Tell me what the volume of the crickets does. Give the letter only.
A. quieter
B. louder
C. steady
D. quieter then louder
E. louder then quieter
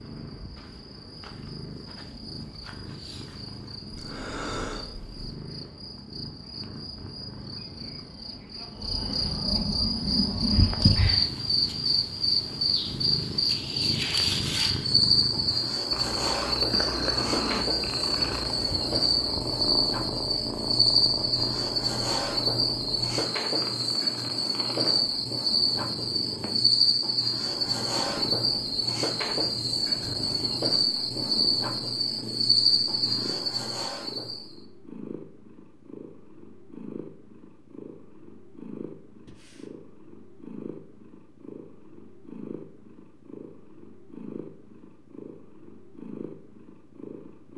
B.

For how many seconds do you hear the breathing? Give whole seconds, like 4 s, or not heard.
2 s.